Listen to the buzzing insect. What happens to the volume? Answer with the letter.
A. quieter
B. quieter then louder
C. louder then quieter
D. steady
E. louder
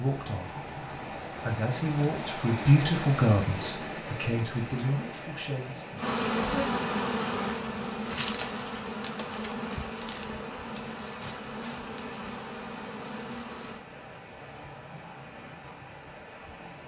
A.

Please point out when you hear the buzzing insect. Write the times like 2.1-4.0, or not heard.
6.0-13.8.